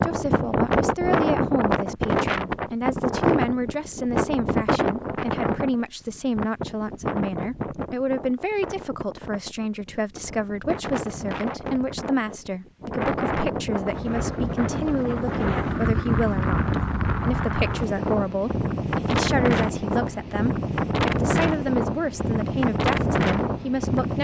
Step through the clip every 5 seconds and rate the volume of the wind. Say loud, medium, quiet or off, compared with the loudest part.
loud, medium, medium, loud, loud.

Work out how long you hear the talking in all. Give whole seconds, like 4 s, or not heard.
24 s.